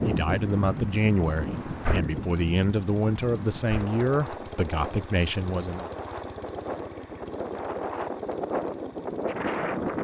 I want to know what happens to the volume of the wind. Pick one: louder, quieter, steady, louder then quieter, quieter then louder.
quieter then louder.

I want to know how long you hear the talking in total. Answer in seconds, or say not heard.
6 s.